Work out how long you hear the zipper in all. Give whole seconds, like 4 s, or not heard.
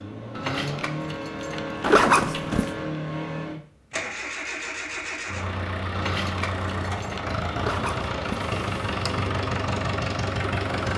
3 s.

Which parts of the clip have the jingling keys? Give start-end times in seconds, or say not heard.
0.3-3.0, 5.9-7.4.